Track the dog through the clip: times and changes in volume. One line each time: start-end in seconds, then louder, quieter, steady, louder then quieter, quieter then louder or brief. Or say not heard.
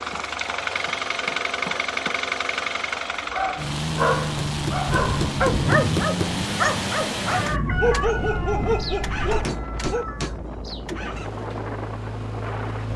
3.2-10.1 steady.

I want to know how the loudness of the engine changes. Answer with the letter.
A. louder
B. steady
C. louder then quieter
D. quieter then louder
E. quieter
E.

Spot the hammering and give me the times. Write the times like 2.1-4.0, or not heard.
0.1-2.1, 4.5-6.3, 9.4-11.0.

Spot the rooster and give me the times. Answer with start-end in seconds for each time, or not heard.
7.3-10.4.